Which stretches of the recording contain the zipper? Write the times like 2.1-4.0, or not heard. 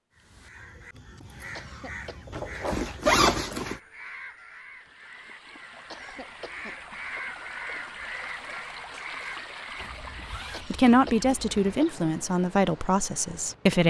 2.3-3.8, 9.8-11.8.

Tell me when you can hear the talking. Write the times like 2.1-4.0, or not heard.
10.7-13.8.